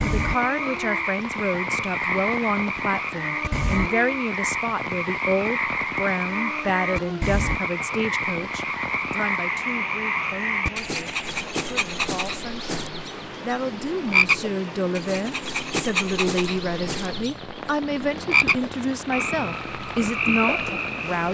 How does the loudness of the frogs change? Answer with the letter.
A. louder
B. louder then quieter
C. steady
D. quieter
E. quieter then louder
C.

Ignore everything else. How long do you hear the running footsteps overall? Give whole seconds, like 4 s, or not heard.
not heard.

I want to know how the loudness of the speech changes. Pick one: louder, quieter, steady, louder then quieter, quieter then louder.
quieter then louder.